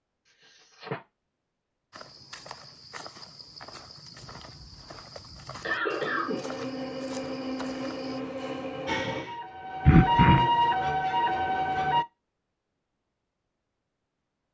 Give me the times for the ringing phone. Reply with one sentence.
You can't hear the ringing phone here.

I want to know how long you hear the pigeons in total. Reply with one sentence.
The pigeons can't be heard in this clip.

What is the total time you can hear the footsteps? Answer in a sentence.
You can hear the footsteps for 6 seconds altogether.